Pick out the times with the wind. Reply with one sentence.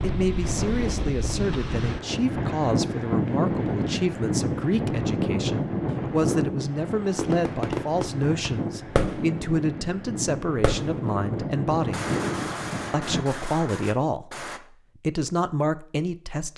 You can hear the wind from 0.0 to 13.2 s.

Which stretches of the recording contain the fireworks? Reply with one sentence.
You can hear the fireworks from 7.0 to 9.4 s, from 10.6 to 11.2 s and from 11.9 to 14.6 s.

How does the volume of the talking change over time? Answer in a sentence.
The loudness of the talking stays about the same.